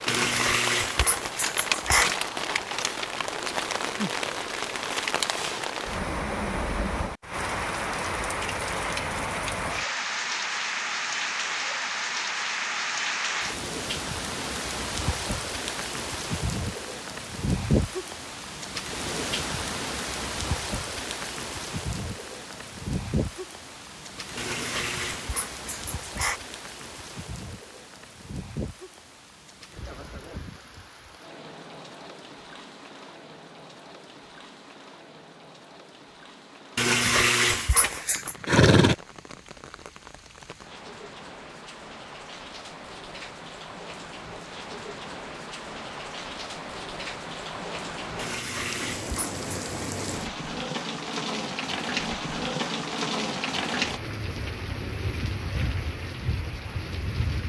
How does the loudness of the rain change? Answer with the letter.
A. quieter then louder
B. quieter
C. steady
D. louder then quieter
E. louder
A.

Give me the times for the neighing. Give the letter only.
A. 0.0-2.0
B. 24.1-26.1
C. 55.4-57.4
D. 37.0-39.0
D.